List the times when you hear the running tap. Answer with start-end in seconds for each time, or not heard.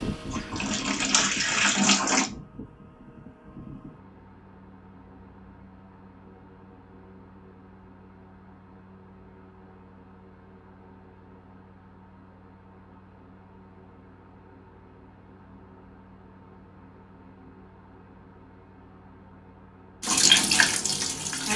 0.1-2.3, 20.0-21.5.